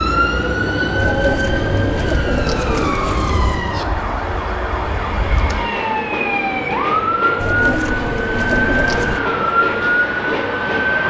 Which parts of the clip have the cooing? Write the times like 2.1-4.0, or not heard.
0.9-3.7, 7.3-9.2.